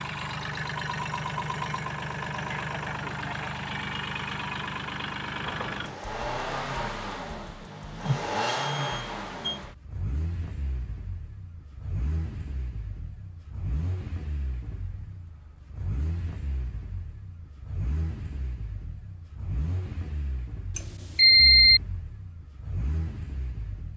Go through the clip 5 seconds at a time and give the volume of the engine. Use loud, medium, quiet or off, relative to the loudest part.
loud, loud, medium, medium, medium.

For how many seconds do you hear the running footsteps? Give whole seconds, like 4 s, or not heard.
not heard.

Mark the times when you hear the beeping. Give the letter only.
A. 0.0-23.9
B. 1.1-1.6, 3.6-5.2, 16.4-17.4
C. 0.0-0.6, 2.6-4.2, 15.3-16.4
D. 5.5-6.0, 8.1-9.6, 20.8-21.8
D.